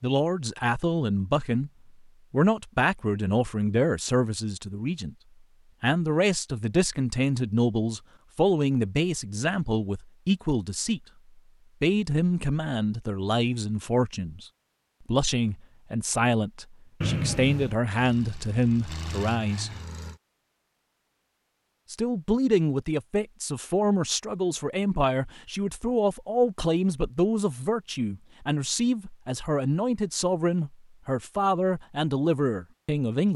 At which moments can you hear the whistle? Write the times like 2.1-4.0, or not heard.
17.0-17.8.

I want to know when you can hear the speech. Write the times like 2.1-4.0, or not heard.
0.0-1.7, 2.3-5.2, 5.8-11.0, 11.8-14.4, 15.1-19.7, 21.9-33.3.